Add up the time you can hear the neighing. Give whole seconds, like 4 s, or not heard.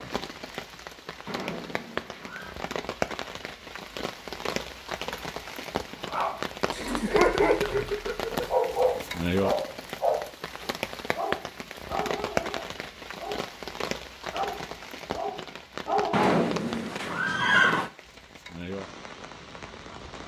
5 s.